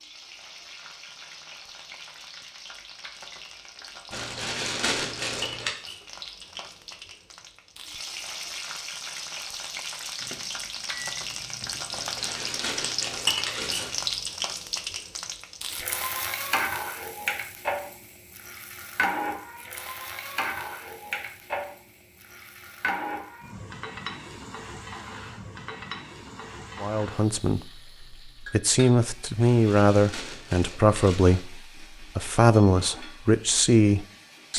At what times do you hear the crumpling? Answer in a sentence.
The crumpling can be heard from 4.1 to 5.7 s, from 11.9 to 14.2 s and from 29.4 to 31.4 s.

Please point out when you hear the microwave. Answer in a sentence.
You can hear the microwave from 10.2 to 11.9 s.